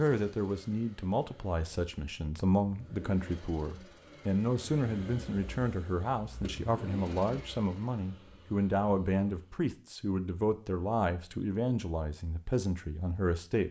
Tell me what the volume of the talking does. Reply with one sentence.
The volume of the talking stays about the same.